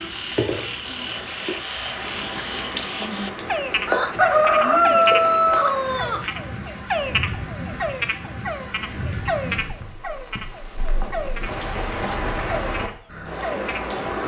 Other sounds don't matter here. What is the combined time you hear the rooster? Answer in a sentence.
The rooster can be heard for 2 seconds in total.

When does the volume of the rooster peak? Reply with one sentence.
The loudest moment of the rooster is at 5 seconds.